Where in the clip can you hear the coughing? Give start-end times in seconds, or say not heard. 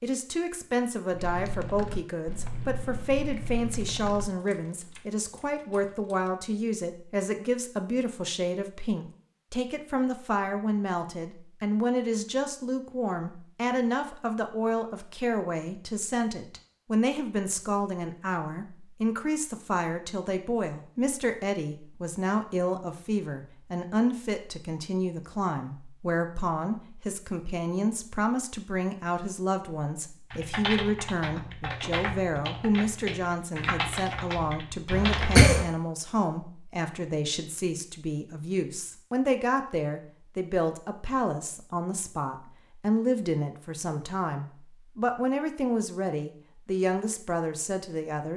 34.9-35.6.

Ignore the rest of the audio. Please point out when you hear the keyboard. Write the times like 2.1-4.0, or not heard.
1.1-6.3, 30.3-35.5.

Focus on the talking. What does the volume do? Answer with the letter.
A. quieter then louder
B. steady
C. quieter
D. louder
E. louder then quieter
B.